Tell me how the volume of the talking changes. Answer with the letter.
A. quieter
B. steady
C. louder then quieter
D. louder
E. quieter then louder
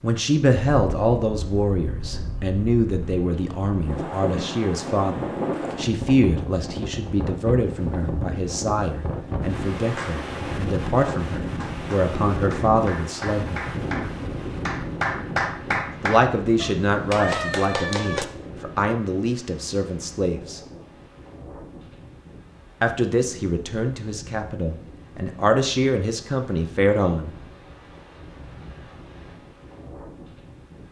B.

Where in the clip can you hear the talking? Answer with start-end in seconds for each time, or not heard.
0.0-13.6, 16.0-20.6, 22.8-27.3.